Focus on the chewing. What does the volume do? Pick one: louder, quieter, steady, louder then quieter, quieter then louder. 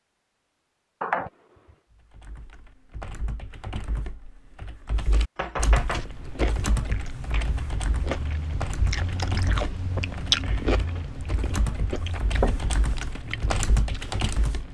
louder then quieter.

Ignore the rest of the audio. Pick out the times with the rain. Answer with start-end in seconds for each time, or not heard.
not heard.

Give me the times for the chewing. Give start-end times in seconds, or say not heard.
5.8-14.7.